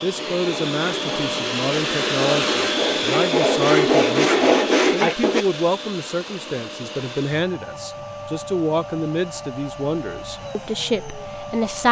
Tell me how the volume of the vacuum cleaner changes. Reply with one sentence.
The loudness of the vacuum cleaner goes down.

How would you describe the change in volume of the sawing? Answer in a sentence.
The loudness of the sawing goes up.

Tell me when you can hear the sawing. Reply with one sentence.
You can hear the sawing from 0.1 to 5.5 s.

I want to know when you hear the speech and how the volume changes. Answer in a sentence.
You can hear the speech from 0.0 to 11.8 s, at a steady volume.